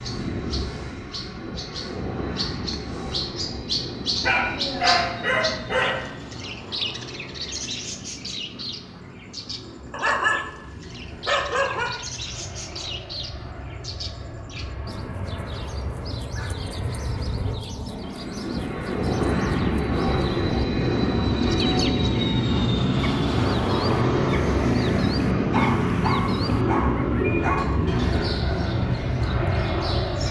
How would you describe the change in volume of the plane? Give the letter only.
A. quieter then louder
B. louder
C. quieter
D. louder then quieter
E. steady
A.